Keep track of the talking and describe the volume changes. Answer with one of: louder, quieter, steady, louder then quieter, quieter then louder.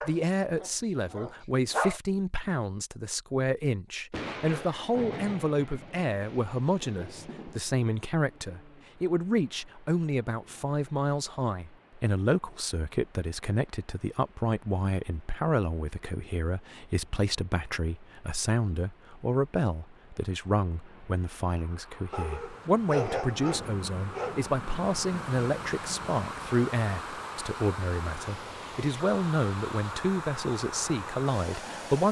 steady.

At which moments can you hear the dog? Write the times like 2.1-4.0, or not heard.
0.0-2.0, 22.1-24.5.